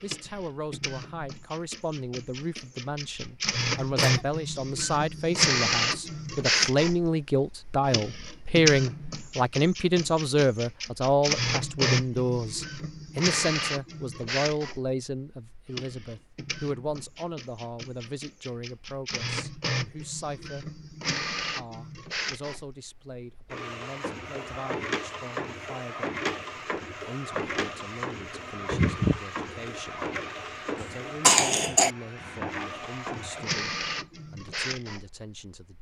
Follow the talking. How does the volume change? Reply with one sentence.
The volume of the talking goes up, then down.